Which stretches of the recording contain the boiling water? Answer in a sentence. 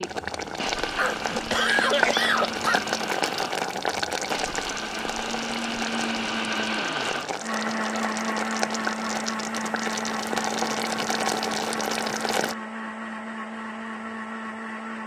You can hear the boiling water from 0.0 to 12.6 s.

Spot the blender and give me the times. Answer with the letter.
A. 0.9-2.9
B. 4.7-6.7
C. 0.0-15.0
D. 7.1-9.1
C.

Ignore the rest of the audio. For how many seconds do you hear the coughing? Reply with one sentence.
The coughing can be heard for 2 seconds in total.